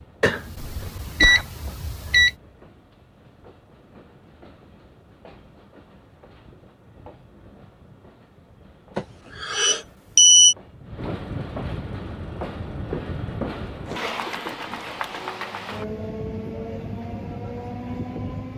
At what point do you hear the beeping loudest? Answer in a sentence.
The loudest moment of the beeping is at 10 seconds.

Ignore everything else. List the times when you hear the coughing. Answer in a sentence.
The coughing can be heard from 0.6 to 1.4 s, from 8.9 to 9.8 s and from 13.9 to 15.3 s.